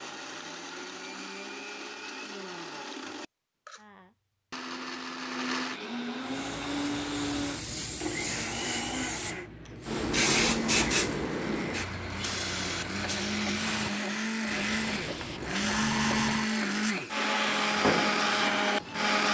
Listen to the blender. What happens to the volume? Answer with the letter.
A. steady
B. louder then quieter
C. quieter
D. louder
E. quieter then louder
D.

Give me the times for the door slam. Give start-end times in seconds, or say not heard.
not heard.